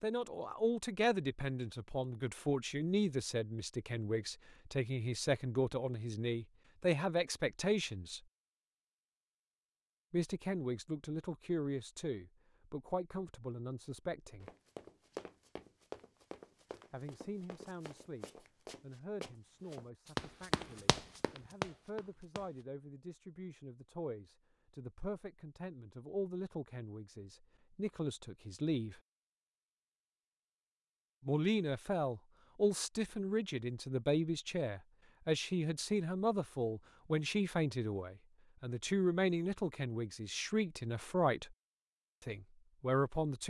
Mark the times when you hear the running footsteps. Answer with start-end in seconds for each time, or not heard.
14.4-22.6.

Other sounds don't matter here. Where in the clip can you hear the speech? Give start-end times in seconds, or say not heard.
0.0-8.2, 10.1-14.5, 16.9-29.0, 31.2-41.5, 42.2-43.4.